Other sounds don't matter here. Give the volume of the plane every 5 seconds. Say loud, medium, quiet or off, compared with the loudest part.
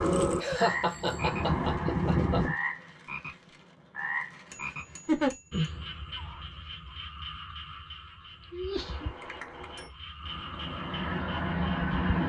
loud, off, loud.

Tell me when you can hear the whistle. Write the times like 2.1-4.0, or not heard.
not heard.